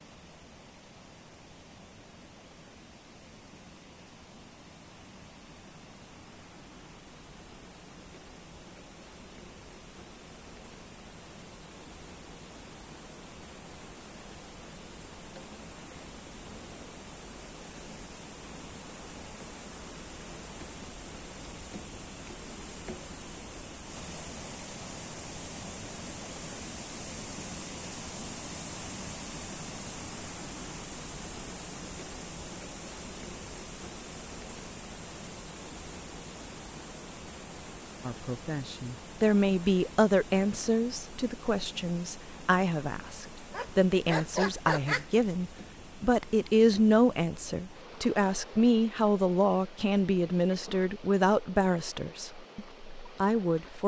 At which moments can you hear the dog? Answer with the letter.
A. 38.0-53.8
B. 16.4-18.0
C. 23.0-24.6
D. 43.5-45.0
D.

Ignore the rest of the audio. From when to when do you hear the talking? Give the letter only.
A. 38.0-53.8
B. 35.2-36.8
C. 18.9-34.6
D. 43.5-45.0
A.